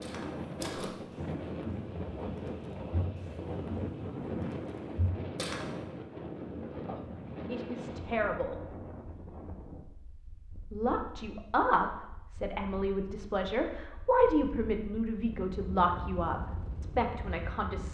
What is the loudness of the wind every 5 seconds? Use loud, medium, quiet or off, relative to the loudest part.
loud, loud, quiet, medium.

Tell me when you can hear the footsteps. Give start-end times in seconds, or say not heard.
0.0-5.7.